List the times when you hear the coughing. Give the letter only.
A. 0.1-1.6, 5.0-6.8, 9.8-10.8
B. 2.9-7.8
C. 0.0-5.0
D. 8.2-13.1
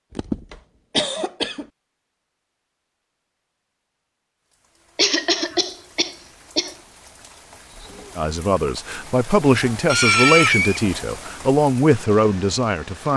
A.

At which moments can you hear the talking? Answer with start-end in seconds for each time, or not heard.
8.2-13.1.